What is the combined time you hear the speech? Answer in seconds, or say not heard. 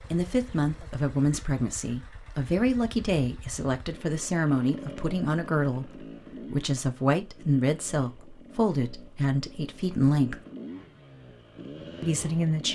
11 s.